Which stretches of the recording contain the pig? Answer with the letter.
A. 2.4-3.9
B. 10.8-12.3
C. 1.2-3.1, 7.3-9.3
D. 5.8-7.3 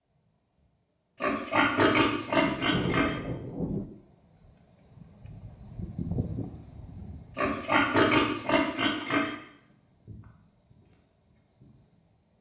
C.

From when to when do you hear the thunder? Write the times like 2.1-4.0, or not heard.
2.4-3.9.